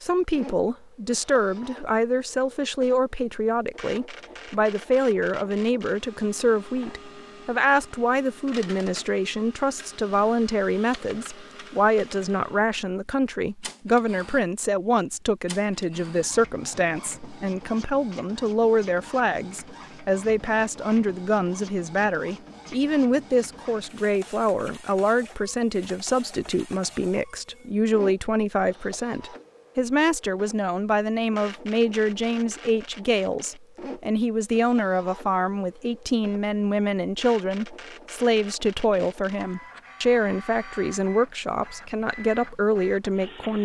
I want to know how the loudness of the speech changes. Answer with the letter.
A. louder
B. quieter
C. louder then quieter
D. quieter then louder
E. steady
E.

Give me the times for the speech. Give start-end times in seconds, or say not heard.
0.0-43.6.